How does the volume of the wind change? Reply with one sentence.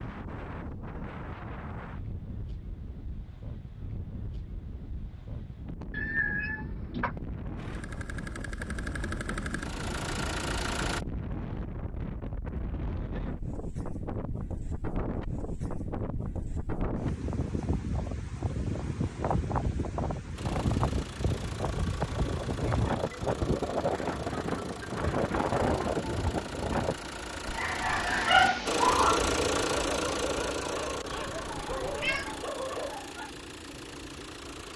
The loudness of the wind goes up.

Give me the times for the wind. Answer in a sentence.
You can hear the wind from 0.0 to 26.9 s.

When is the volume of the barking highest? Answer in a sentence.
The volume of the barking peaks at 28 seconds.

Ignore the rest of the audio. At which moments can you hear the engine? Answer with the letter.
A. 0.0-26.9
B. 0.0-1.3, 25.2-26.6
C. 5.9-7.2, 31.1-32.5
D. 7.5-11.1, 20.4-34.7
D.